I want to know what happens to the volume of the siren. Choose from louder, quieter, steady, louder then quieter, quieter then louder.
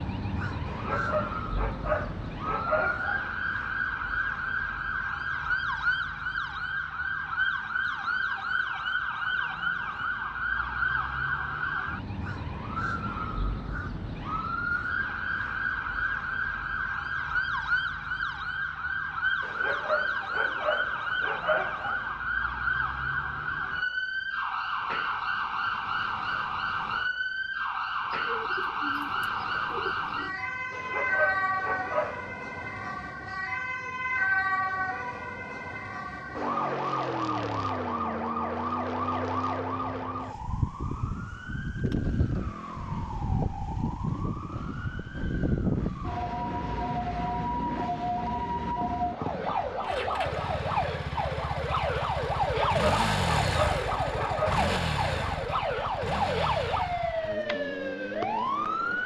steady.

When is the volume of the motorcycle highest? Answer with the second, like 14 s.
53 s.